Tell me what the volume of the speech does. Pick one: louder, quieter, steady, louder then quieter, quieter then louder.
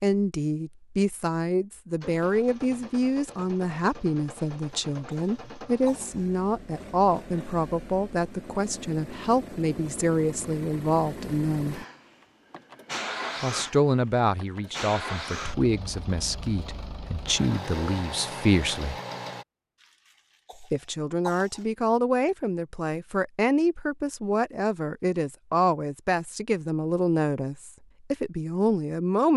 steady.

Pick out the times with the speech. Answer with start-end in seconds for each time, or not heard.
0.0-11.8, 13.4-18.9, 20.6-29.3.